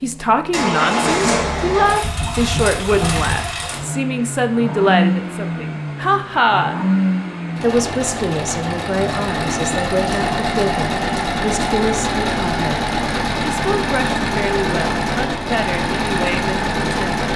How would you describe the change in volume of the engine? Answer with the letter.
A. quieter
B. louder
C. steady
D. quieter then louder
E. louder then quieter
C.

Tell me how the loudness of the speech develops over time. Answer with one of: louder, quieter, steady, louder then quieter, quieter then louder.
quieter.